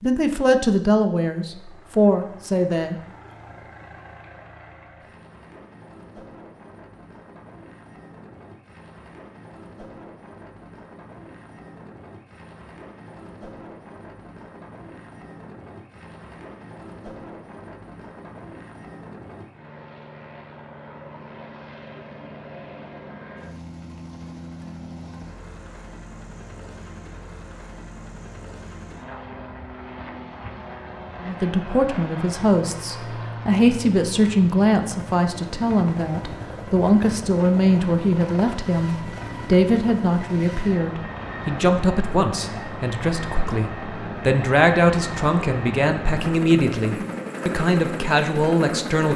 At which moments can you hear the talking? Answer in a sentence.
You can hear the talking from 0.0 to 3.0 s and from 31.2 to 49.1 s.